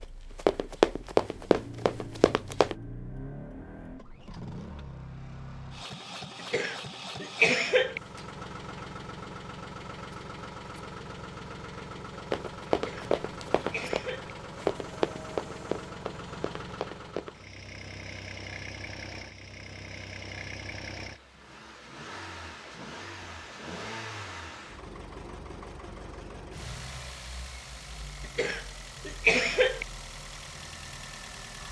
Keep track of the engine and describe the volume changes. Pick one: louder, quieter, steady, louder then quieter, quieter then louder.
steady.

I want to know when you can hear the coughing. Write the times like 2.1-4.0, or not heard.
6.5-8.0, 12.7-14.3, 28.4-29.9.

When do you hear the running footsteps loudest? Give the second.
1 s.